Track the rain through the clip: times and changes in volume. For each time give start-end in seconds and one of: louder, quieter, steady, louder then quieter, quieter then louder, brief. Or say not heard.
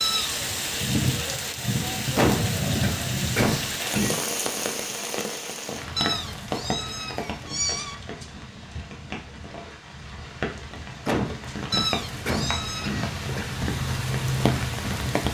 0.0-15.2 quieter then louder.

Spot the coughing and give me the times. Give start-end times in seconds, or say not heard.
2.1-4.2, 11.1-13.6.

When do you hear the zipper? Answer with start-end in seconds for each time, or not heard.
not heard.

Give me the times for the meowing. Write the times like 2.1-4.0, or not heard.
0.0-0.4, 6.0-8.0, 11.7-12.9.